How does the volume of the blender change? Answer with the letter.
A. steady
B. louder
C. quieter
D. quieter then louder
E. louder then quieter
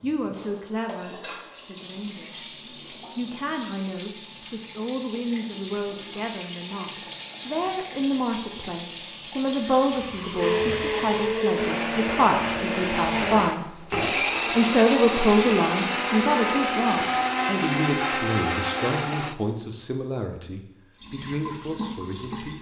A.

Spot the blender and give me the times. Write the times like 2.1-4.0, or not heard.
10.3-19.4.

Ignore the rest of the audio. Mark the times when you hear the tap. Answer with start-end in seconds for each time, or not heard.
0.0-11.4, 20.9-22.5.